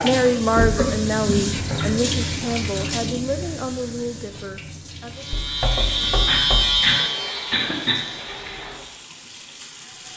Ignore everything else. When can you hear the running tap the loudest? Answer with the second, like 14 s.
2 s.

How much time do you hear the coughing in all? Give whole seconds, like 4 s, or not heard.
4 s.